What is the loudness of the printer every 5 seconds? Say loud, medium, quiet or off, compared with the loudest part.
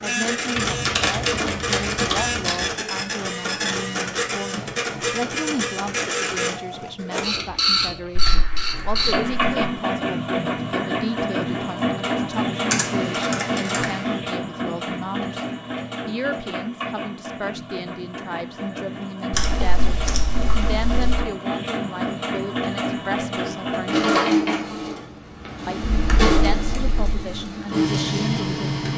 loud, loud, loud, medium, loud, loud.